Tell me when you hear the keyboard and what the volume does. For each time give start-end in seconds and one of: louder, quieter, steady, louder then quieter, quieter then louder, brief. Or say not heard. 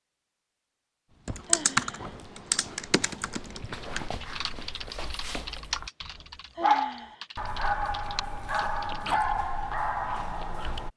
1.2-9.1 quieter.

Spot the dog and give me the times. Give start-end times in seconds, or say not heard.
1.1-10.9.